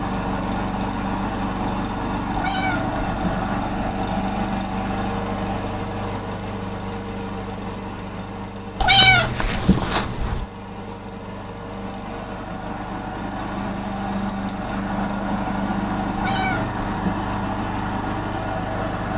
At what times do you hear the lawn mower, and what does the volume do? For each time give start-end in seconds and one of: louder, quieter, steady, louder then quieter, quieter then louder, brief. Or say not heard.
0.0-19.1 quieter then louder.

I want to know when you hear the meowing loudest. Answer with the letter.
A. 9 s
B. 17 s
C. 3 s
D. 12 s
A.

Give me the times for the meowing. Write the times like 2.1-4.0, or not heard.
2.4-3.7, 8.8-10.4, 16.1-17.2.